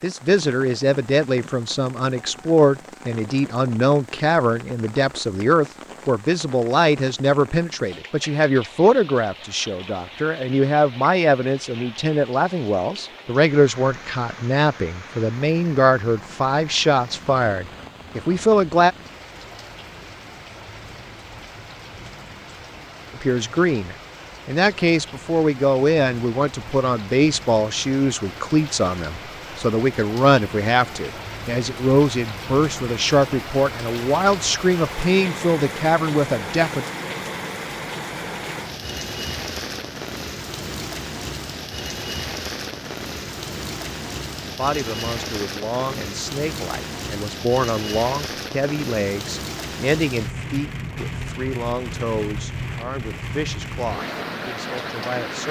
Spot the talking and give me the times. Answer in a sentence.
The talking can be heard from 0.0 to 18.9 s, from 23.1 to 36.9 s and from 44.5 to 55.4 s.